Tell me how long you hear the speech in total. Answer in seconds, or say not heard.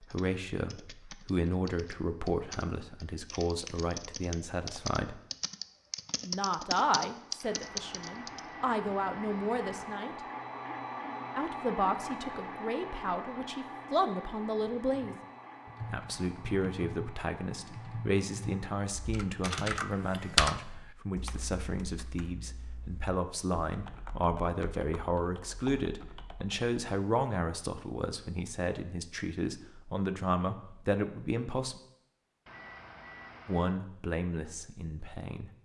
31 s.